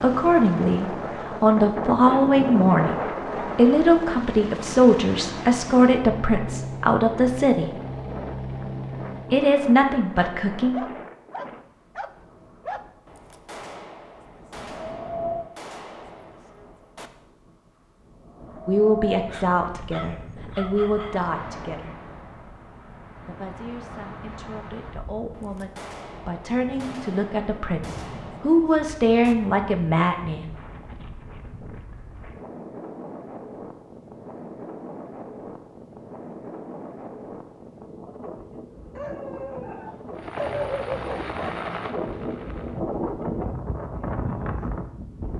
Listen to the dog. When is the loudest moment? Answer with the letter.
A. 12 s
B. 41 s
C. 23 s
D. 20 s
B.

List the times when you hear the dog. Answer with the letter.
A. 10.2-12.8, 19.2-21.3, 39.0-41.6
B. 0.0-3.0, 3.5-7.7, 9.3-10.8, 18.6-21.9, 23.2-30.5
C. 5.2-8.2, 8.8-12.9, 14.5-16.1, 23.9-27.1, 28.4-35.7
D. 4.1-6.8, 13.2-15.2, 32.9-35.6
A.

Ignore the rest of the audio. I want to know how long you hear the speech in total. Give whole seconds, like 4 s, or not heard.
19 s.